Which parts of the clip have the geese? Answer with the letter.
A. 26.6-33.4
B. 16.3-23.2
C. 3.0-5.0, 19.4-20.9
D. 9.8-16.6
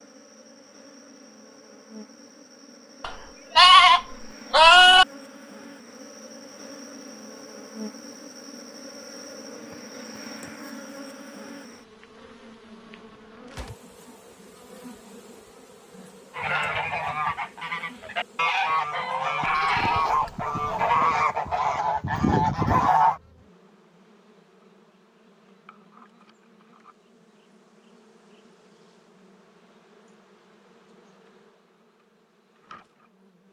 B.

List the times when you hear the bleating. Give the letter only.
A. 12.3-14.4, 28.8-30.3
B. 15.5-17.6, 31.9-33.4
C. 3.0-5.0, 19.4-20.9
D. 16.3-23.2
C.